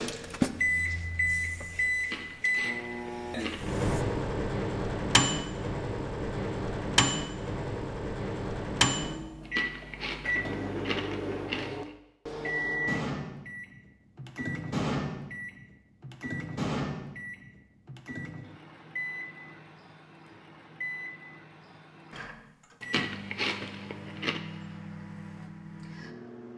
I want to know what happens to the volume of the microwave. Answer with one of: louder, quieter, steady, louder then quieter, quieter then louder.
quieter.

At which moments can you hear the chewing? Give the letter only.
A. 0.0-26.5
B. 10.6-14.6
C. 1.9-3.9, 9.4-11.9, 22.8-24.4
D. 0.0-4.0
C.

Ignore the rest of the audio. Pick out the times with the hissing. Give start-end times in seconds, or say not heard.
0.0-4.0.